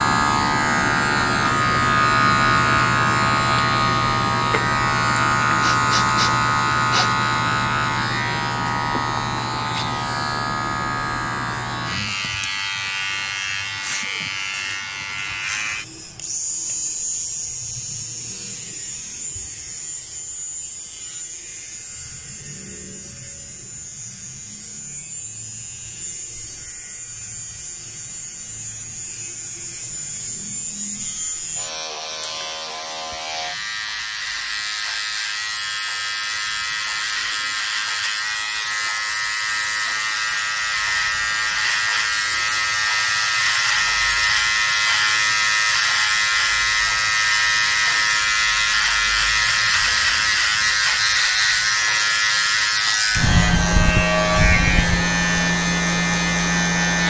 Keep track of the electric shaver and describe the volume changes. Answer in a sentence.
The loudness of the electric shaver goes down, then up.